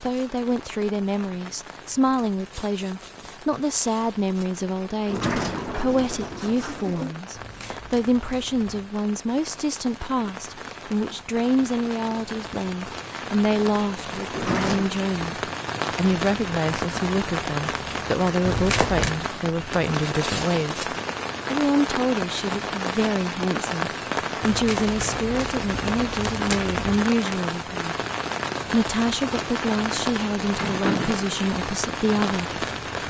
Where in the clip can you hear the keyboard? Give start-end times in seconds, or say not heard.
not heard.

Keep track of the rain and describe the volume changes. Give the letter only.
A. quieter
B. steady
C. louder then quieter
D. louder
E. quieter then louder
D.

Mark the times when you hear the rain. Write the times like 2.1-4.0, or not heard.
0.0-33.0.